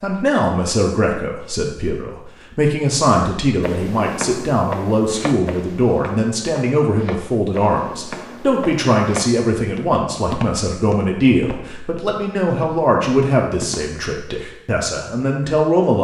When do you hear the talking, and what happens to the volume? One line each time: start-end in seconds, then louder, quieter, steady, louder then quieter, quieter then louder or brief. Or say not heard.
0.0-15.9 steady.